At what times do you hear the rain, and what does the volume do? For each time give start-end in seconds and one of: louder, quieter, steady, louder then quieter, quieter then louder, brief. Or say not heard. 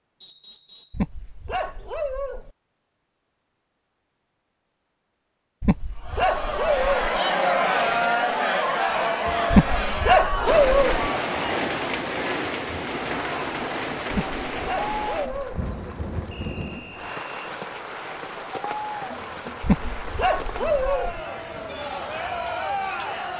10.4-23.3 quieter.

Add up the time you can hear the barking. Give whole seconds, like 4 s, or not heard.
8 s.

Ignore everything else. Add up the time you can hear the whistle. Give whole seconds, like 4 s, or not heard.
2 s.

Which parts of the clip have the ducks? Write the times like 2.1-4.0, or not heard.
not heard.